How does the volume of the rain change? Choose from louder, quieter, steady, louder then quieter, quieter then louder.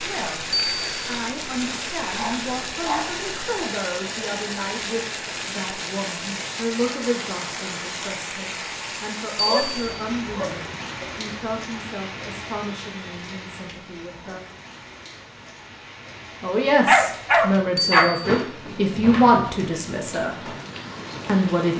quieter then louder.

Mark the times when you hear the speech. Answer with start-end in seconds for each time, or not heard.
0.0-0.5, 1.1-14.4, 16.4-20.3, 21.2-21.7.